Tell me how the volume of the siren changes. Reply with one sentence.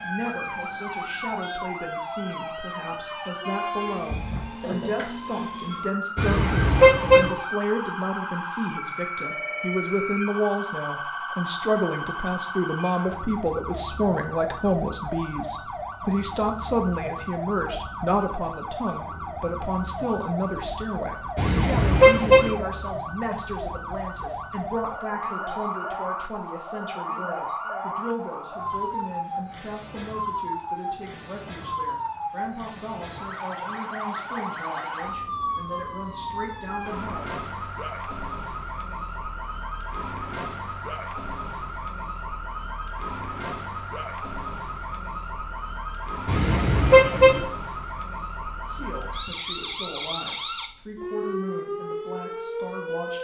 The loudness of the siren stays about the same.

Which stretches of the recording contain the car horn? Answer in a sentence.
The car horn can be heard from 6.2 to 7.3 s, from 21.4 to 22.5 s and from 46.2 to 47.4 s.